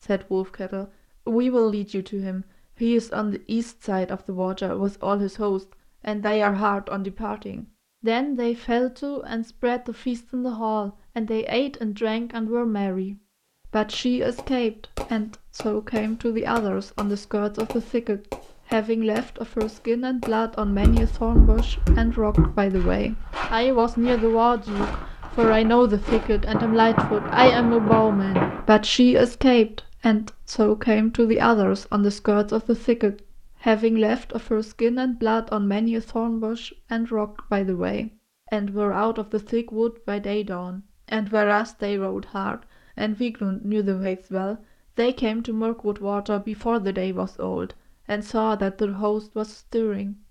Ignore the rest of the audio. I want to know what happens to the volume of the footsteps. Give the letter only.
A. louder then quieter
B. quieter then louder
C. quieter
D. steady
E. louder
B.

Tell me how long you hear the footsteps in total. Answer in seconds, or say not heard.
8 s.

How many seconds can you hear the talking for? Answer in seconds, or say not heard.
50 s.